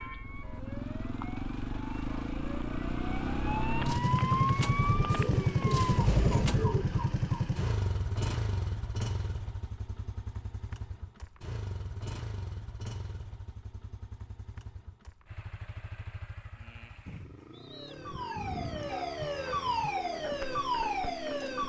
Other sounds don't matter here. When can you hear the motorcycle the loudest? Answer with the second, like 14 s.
6 s.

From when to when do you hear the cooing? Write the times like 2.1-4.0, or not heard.
4.8-6.8, 17.1-19.8.